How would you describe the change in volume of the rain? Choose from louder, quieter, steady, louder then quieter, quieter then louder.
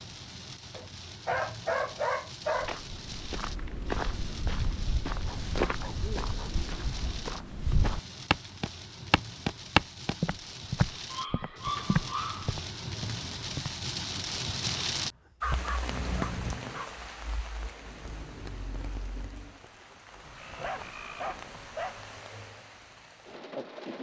louder then quieter.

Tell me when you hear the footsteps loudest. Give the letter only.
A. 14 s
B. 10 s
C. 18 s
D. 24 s
B.